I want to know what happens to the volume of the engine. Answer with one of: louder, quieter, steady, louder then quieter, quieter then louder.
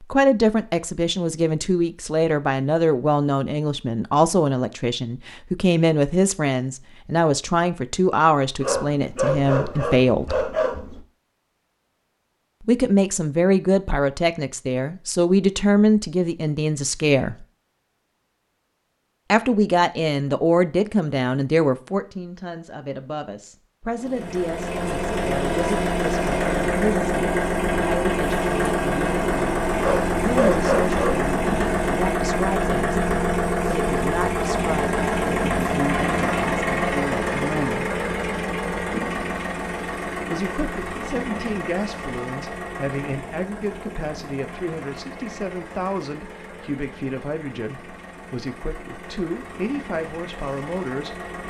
quieter.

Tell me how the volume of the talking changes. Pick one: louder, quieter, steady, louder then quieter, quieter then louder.
quieter.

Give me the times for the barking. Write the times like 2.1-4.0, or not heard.
8.6-11.1, 29.8-31.2.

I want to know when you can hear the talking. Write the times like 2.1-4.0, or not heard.
0.0-10.4, 12.7-17.4, 19.3-37.9, 40.1-51.4.